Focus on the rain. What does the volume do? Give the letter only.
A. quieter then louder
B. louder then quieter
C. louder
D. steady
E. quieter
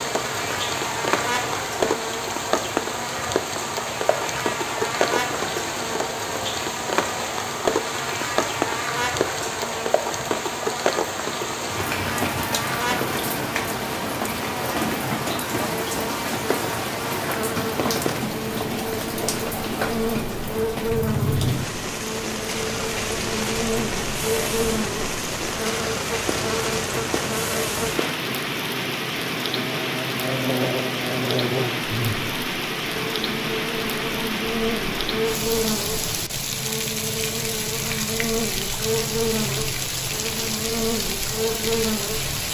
D.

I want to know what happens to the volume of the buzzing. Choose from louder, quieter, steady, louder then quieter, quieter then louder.
steady.